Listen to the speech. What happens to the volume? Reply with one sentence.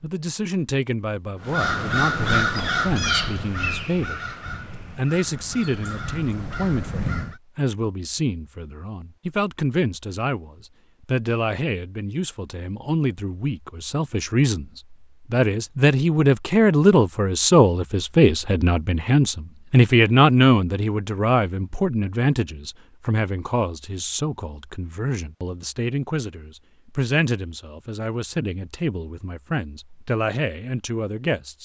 The loudness of the speech goes up, then down.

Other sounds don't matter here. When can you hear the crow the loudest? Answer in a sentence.
The volume of the crow peaks at 2 seconds.